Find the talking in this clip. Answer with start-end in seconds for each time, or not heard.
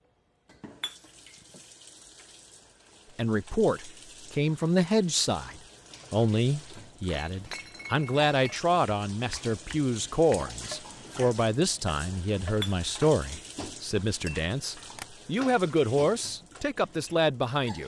3.1-17.8.